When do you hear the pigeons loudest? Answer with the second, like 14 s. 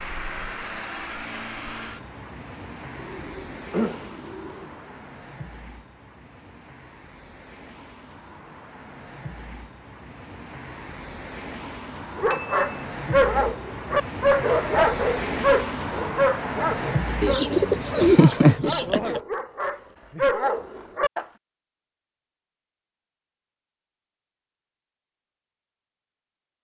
18 s.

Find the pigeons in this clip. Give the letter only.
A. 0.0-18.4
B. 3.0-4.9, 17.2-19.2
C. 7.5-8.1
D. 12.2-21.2
B.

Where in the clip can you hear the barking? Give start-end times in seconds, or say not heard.
12.2-21.2.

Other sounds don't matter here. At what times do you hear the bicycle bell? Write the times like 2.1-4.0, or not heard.
12.3-12.8.